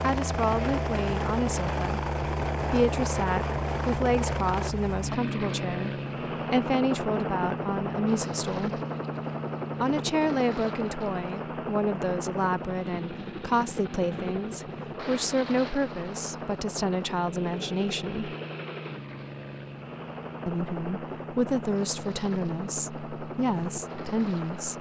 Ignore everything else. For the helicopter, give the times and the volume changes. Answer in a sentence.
You can hear the helicopter from 0.0 to 24.7 s, getting quieter.